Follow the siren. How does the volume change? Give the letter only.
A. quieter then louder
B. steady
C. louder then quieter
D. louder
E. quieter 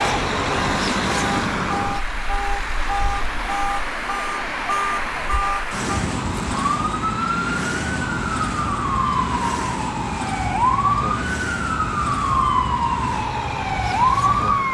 D.